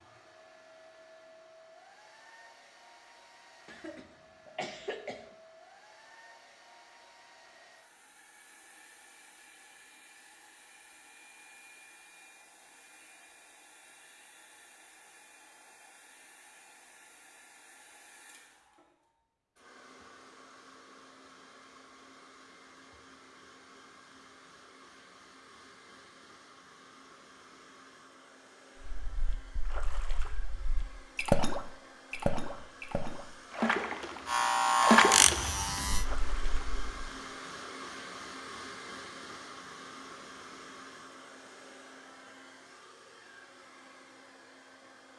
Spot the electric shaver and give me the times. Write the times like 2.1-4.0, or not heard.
34.2-36.0.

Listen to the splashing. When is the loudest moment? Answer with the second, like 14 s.
35 s.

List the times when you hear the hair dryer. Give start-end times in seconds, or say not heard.
0.0-45.1.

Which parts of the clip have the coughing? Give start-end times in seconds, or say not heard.
3.6-5.2.